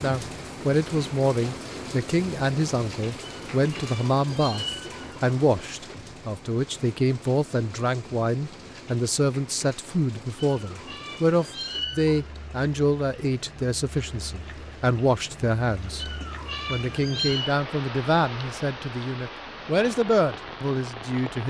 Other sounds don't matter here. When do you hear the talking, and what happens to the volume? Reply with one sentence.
The talking can be heard from 0.0 to 21.4 s, at a steady volume.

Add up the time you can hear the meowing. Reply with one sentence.
You can hear the meowing for 5 seconds altogether.